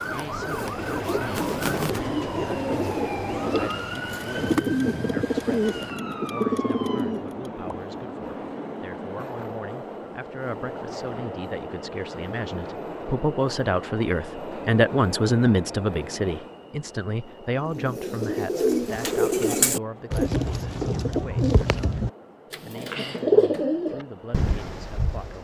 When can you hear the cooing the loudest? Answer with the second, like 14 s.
23 s.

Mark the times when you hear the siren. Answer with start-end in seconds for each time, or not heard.
0.0-7.2.